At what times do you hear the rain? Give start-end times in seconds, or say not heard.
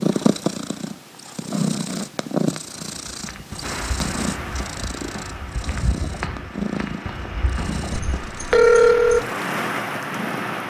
3.6-10.6.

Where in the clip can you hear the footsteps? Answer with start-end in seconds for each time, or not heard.
3.0-8.2.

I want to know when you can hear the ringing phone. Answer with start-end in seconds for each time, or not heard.
7.9-9.2.